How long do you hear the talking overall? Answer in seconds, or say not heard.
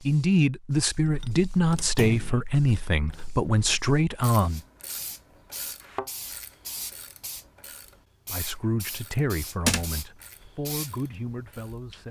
8 s.